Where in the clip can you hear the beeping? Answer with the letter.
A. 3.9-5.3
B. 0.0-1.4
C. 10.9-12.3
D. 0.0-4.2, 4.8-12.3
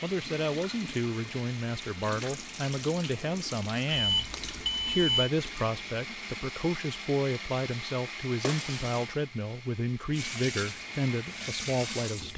A.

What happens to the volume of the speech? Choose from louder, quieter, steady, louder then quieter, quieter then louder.
steady.